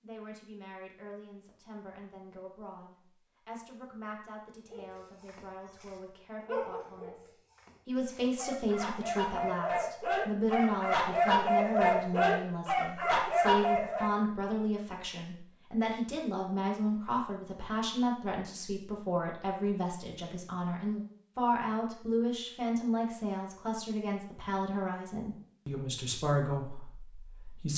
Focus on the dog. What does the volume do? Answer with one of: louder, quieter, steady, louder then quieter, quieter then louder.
quieter then louder.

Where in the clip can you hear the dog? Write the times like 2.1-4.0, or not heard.
4.7-14.2.